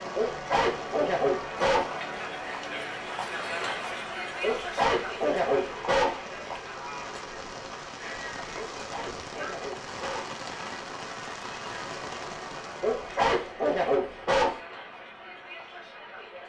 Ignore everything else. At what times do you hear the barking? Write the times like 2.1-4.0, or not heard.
0.1-1.9, 4.4-6.2, 8.6-10.3, 12.8-14.6.